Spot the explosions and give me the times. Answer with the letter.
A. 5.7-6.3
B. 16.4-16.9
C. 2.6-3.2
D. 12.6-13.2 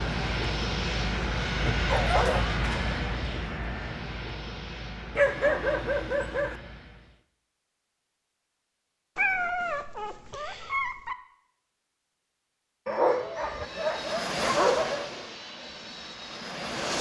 C.